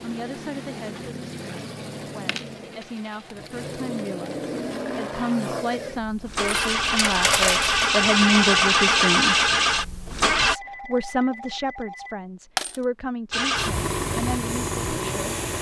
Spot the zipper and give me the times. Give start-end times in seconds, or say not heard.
not heard.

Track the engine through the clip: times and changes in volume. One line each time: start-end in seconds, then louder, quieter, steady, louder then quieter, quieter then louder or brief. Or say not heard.
0.0-10.6 louder
13.3-15.5 brief.